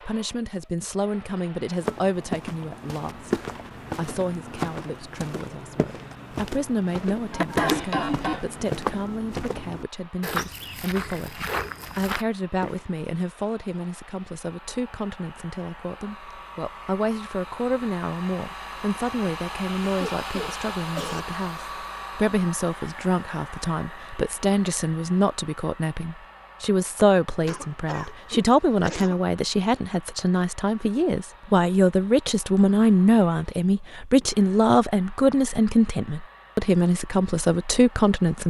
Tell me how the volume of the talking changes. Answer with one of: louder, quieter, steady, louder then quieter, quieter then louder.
louder.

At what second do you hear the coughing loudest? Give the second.
8 s.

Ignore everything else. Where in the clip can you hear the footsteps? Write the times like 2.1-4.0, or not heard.
1.8-12.8.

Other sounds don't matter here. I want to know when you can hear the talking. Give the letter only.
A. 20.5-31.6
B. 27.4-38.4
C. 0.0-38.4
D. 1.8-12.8
C.